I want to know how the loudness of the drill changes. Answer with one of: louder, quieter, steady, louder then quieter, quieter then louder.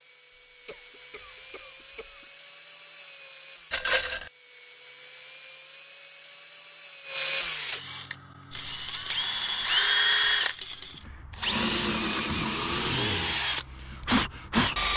louder.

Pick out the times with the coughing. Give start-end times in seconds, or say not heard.
0.7-2.3, 12.2-13.2.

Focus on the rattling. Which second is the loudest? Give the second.
4 s.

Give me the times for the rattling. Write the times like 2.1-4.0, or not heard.
3.7-4.3, 8.5-11.1.